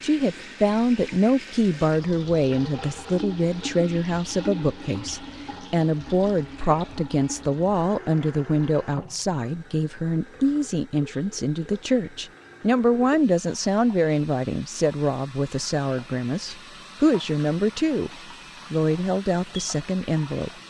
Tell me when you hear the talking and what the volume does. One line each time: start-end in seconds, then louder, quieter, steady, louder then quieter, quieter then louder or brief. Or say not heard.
0.0-18.1 steady
18.7-20.5 brief.